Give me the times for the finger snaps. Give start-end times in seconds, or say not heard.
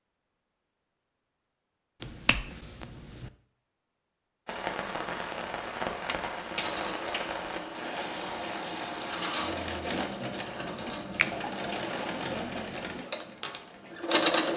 2.0-3.3, 6.0-7.3.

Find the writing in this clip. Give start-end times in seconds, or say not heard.
not heard.